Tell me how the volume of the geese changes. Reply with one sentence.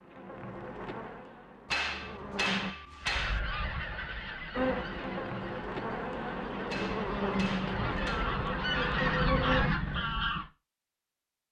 The volume of the geese goes down, then up.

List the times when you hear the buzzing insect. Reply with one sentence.
The buzzing insect can be heard from 0.0 to 2.8 s and from 4.5 to 9.7 s.